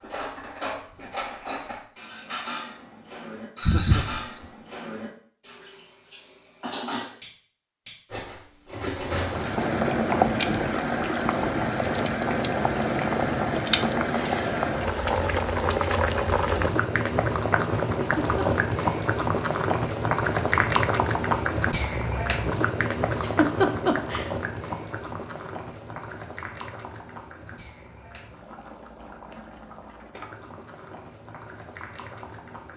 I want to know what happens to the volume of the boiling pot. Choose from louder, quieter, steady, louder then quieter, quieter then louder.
quieter.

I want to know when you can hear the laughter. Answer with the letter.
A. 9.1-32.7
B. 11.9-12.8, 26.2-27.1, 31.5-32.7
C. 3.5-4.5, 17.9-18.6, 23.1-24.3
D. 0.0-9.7
C.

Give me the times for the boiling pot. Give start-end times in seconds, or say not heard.
9.1-32.7.